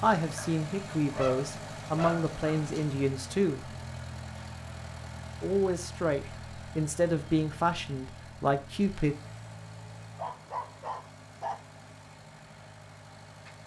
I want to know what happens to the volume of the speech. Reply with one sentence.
The volume of the speech stays about the same.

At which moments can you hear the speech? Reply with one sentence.
You can hear the speech from 0.0 to 3.7 s and from 5.4 to 9.2 s.